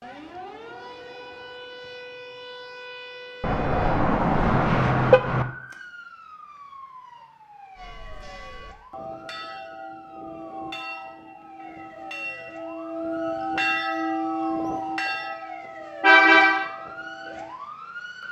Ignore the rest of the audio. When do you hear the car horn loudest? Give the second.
16 s.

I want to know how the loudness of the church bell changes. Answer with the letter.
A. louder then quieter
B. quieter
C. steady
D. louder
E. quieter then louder
A.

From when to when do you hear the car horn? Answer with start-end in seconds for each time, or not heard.
3.4-5.5, 16.0-16.7.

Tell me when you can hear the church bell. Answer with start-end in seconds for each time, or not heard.
7.8-17.6.